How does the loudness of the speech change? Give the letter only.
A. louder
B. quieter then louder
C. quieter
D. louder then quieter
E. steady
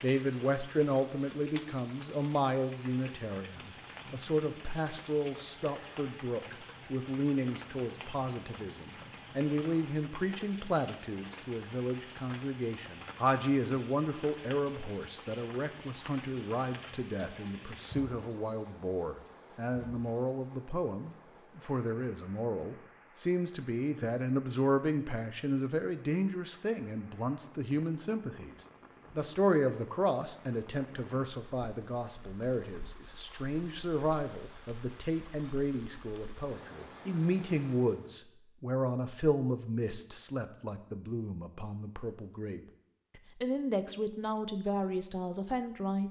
E.